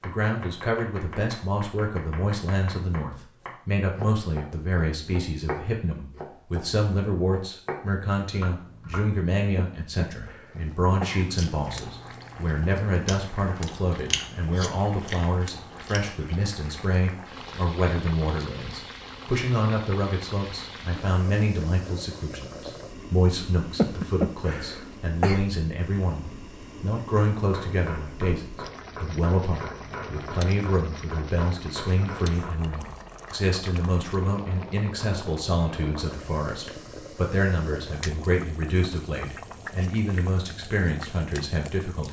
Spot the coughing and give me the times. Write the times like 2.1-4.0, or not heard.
9.6-11.3, 23.8-25.4.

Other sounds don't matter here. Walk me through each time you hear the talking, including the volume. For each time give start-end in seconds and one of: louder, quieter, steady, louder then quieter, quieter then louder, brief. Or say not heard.
0.0-42.0 steady.